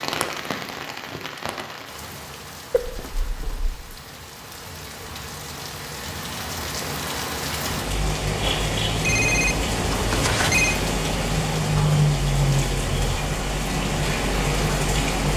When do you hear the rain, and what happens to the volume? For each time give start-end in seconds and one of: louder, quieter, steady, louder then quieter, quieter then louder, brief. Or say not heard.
0.0-15.3 louder.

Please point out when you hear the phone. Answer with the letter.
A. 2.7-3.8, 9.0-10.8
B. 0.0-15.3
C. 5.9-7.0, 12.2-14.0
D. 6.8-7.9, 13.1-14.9
A.